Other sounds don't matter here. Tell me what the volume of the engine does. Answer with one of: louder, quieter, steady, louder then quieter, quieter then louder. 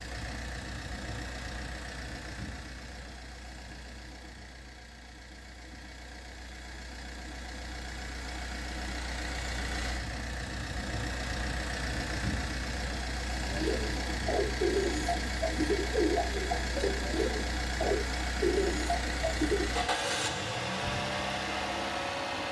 louder.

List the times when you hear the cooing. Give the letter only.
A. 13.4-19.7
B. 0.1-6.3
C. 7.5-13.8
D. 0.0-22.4
A.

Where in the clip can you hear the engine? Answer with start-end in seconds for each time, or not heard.
0.0-22.4.